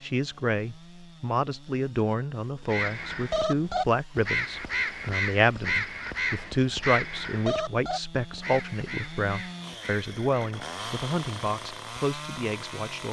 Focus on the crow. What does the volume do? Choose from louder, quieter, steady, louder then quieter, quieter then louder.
quieter.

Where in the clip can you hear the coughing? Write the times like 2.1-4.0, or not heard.
not heard.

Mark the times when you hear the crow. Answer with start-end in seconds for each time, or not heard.
2.6-10.6.